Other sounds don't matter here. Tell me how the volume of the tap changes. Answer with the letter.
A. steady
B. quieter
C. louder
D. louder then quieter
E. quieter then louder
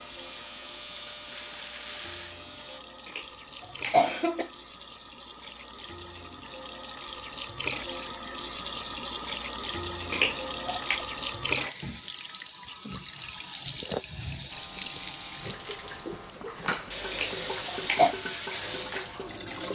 C.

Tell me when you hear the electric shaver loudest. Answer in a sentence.
The volume of the electric shaver peaks at 2 seconds.